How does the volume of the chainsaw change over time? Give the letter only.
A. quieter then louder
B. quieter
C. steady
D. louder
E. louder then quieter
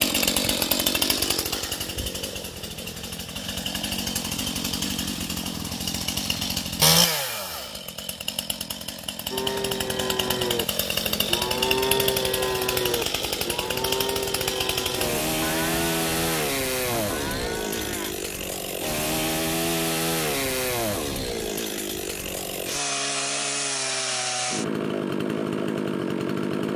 C.